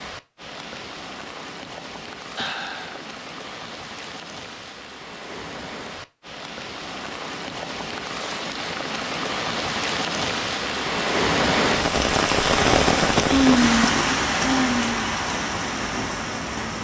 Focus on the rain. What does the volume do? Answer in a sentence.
The volume of the rain goes up.